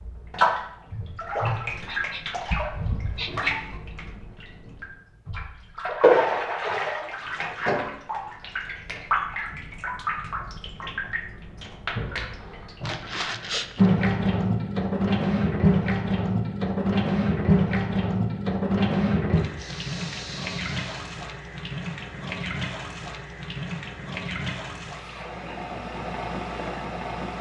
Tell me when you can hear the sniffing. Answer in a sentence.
You can hear the sniffing from 1.8 to 3.5 s, from 12.8 to 13.9 s and from 19.6 to 21.1 s.